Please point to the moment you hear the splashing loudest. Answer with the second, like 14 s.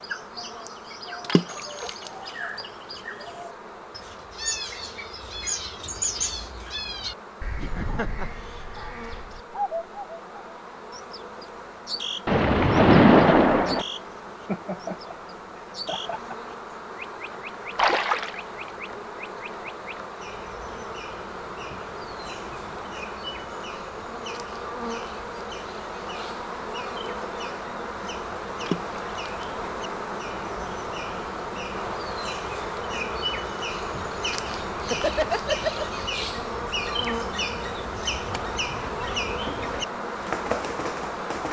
13 s.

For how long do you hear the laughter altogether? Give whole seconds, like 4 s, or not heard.
4 s.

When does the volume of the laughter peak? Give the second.
35 s.